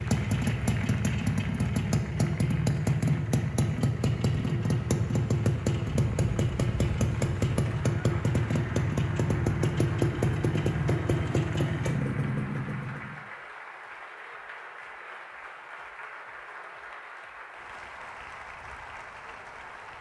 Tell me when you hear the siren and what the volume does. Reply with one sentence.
The siren can't be heard in this clip.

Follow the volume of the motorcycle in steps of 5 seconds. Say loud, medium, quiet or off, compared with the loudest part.
loud, loud, loud, off.